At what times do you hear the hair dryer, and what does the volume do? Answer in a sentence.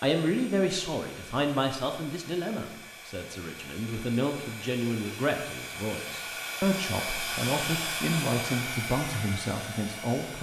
The hair dryer can be heard from 0.0 to 10.3 s, getting louder.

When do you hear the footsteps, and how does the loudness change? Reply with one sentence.
You can't hear the footsteps here.